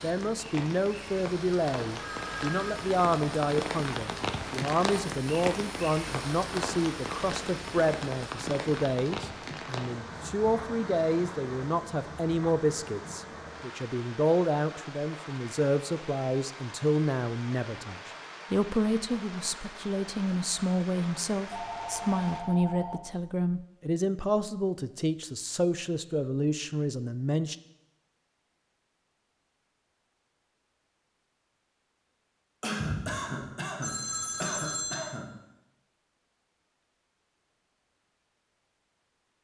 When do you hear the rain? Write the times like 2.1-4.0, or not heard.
0.0-22.4.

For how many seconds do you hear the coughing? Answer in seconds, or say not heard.
3 s.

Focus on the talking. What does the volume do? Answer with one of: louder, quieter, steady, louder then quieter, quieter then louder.
steady.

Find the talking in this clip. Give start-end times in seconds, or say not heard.
0.0-27.6.